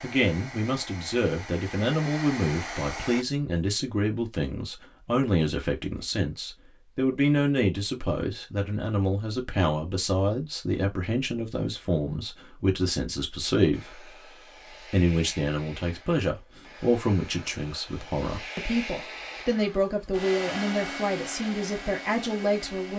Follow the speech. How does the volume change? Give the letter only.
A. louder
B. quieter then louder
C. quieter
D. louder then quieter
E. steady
E.